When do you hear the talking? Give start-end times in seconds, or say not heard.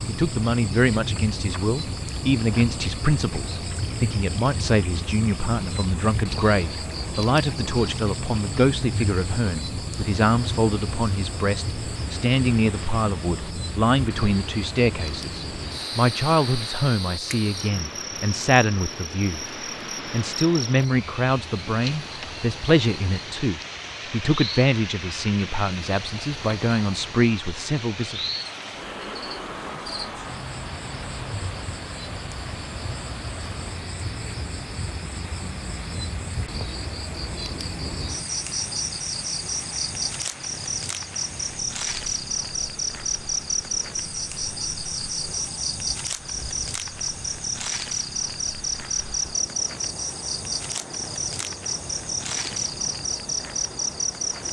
0.1-19.4, 20.1-28.2.